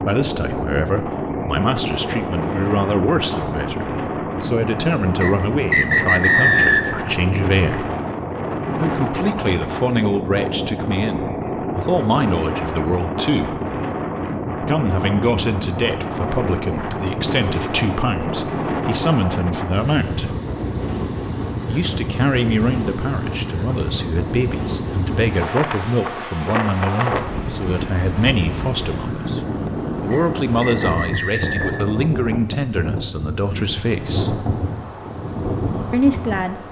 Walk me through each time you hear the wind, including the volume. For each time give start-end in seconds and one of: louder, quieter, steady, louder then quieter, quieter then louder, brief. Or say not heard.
0.0-36.6 steady.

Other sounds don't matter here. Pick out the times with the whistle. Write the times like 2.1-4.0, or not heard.
5.2-7.0, 30.1-31.9.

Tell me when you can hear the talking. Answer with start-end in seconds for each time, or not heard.
0.0-7.8, 8.8-13.6, 14.6-20.4, 21.6-34.4, 35.9-36.6.